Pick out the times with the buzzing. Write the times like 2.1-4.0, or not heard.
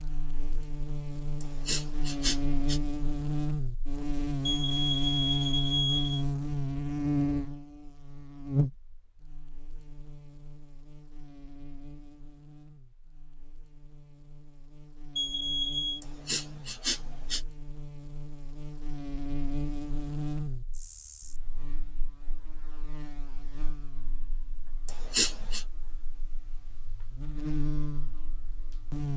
0.0-29.1.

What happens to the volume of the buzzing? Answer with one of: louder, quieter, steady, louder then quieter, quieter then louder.
quieter then louder.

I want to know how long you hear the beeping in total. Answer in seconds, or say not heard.
3 s.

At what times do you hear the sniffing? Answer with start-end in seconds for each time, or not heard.
1.4-2.8, 16.0-17.4, 24.9-25.6.